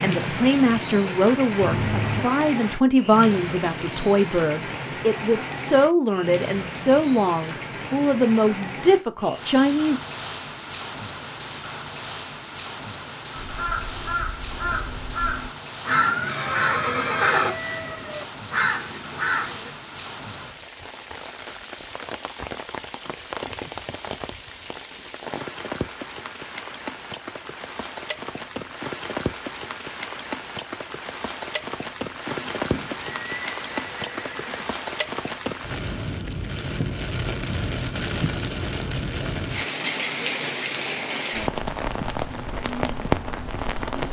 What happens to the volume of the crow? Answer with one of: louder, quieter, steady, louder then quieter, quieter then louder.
steady.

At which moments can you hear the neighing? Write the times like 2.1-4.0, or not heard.
1.6-2.2, 15.8-17.5, 32.2-34.6.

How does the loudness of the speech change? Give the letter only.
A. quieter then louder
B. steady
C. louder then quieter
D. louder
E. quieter
B.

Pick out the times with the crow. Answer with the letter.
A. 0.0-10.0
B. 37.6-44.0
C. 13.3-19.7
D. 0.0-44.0
C.